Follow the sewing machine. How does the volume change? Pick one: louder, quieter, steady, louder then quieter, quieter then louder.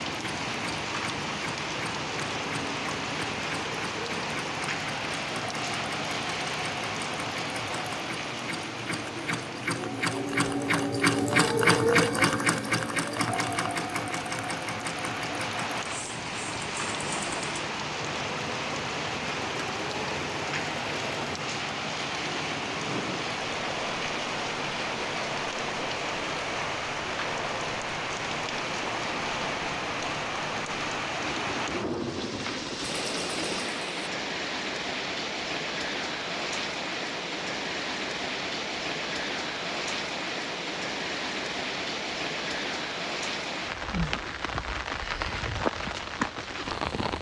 louder then quieter.